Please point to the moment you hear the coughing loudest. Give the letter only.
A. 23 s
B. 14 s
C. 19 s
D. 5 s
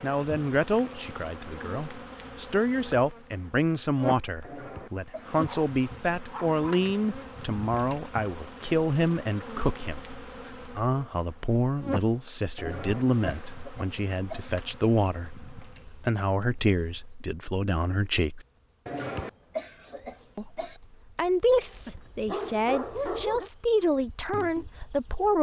C.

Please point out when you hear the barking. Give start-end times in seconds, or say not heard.
5.5-6.9, 21.5-23.5.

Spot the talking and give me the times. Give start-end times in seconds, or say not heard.
0.0-18.4, 20.4-25.3.